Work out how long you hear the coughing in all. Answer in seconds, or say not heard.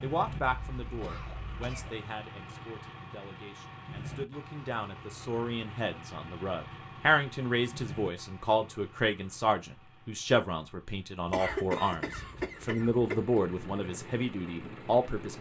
4 s.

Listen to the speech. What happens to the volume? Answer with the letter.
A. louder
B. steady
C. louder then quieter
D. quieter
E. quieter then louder
A.